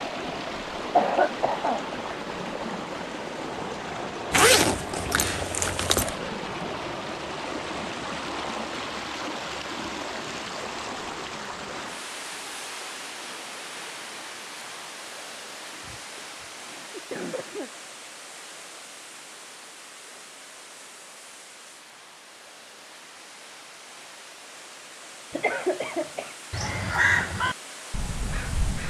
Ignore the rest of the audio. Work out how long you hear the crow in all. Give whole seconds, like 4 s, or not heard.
2 s.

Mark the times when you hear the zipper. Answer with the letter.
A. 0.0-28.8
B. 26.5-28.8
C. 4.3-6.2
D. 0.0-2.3
C.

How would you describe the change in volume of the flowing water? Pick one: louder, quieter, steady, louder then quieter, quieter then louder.
quieter.